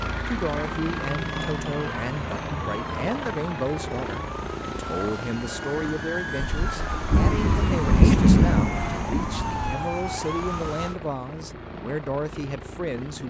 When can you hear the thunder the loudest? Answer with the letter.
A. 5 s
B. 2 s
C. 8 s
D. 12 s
C.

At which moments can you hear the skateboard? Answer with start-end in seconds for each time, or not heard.
not heard.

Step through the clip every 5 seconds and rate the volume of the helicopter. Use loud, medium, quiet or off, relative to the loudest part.
loud, medium, medium.